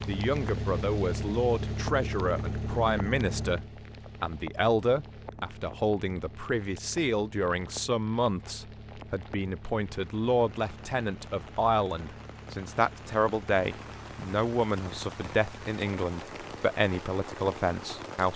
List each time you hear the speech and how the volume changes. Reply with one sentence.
You can hear the speech from 0.1 to 18.3 s, at a steady volume.